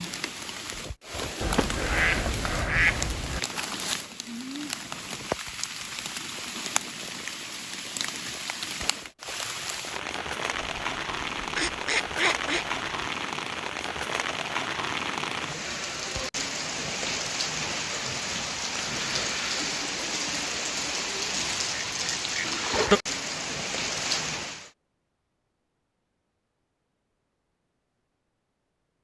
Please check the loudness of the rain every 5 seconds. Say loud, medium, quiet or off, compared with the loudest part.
medium, medium, loud, loud, loud, off.